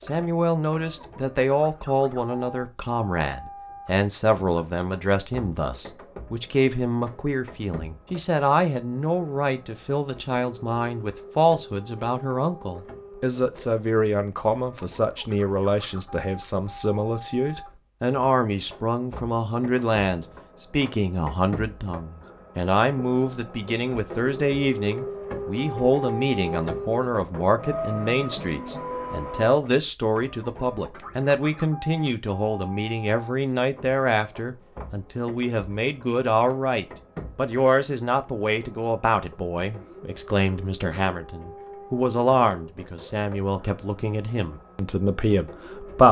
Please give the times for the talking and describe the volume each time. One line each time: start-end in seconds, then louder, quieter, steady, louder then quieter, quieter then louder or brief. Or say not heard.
0.1-46.0 steady.